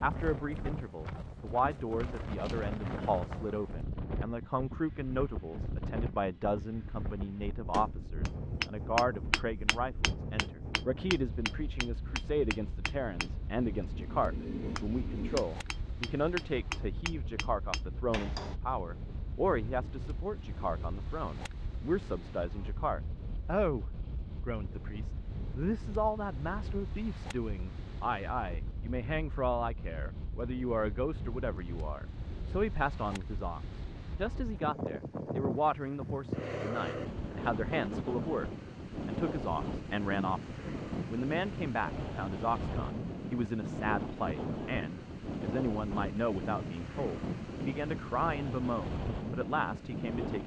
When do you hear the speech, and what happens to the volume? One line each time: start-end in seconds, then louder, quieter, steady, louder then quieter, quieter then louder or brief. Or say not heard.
0.0-50.4 steady.